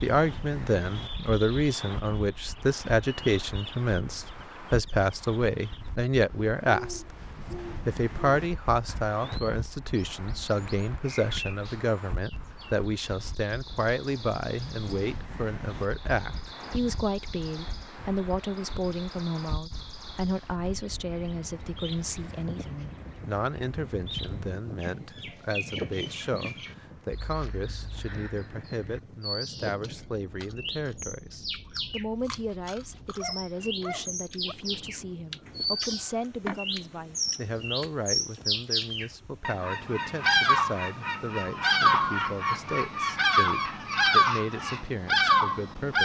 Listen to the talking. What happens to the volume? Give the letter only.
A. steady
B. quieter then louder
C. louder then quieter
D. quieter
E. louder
D.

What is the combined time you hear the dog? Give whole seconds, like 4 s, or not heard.
2 s.